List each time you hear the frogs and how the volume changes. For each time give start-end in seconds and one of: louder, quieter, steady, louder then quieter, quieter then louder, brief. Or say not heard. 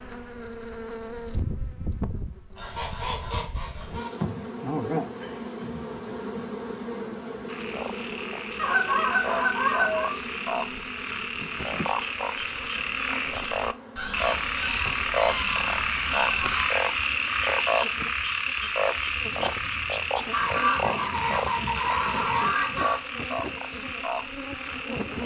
7.5-25.2 louder then quieter.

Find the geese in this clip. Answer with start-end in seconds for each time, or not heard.
2.5-4.2, 8.6-10.2, 13.9-16.8, 20.3-23.0.